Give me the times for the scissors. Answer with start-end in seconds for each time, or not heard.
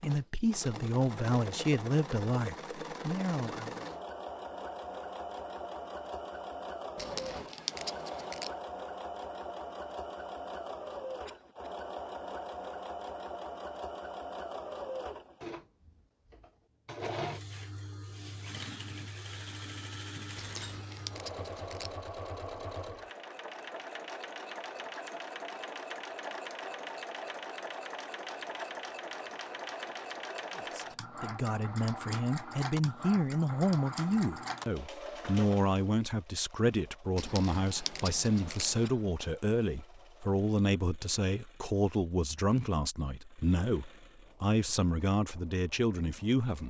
7.0-8.6, 20.4-21.9, 37.1-38.9.